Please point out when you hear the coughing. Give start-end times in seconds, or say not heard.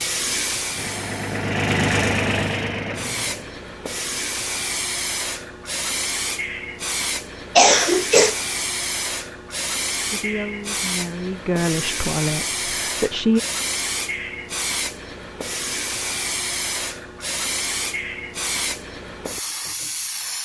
7.5-8.3.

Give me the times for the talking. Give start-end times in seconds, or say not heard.
10.1-13.4.